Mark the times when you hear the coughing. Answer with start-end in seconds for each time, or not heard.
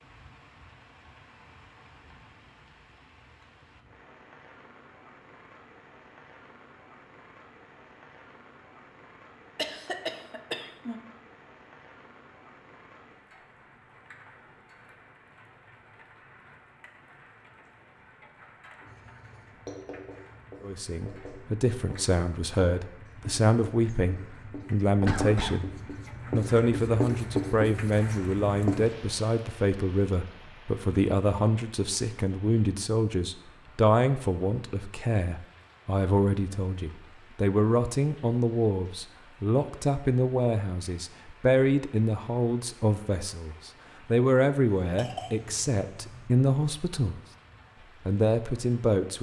9.6-11.0, 25.1-25.6, 44.8-46.3.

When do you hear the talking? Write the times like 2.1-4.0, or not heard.
20.6-25.7, 26.3-47.2, 48.0-49.1.